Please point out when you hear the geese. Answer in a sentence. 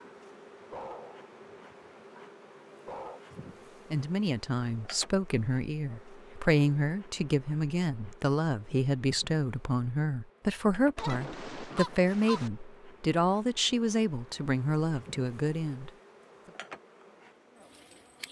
You can hear the geese from 10.9 to 12.5 s.